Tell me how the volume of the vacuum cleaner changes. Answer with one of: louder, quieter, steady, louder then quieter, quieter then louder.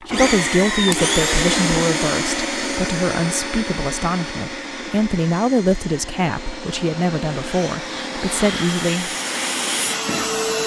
quieter then louder.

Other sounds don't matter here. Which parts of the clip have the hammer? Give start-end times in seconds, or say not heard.
not heard.